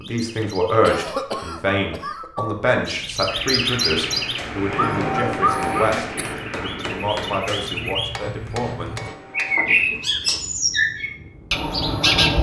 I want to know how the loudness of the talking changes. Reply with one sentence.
The volume of the talking goes down.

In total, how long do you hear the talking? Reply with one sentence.
The talking can be heard for 9 seconds in total.